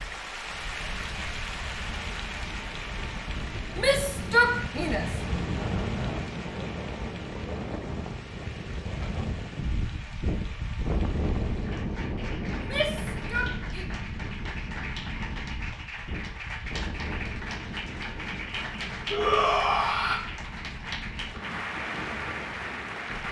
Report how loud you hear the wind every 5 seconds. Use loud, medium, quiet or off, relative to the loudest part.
medium, loud, loud, medium, medium.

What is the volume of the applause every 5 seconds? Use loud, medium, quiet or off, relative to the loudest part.
loud, medium, medium, loud, loud.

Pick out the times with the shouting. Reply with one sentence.
You can hear the shouting from 3.8 to 5.1 s, from 12.5 to 13.9 s and from 19.1 to 20.2 s.